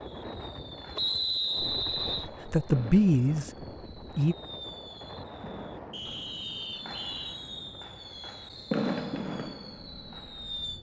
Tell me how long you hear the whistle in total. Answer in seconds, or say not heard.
3 s.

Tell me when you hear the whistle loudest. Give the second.
1 s.